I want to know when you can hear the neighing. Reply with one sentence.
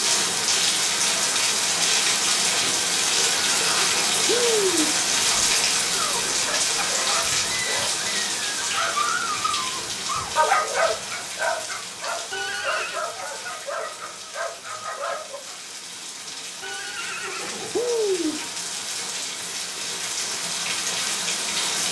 You can hear the neighing from 3.1 to 5.0 s, from 12.3 to 13.0 s and from 16.6 to 18.4 s.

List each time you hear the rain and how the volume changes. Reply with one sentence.
The rain can be heard from 0.0 to 21.8 s, getting quieter then louder.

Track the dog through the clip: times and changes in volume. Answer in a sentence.
You can hear the dog from 5.7 to 15.4 s, getting louder then quieter.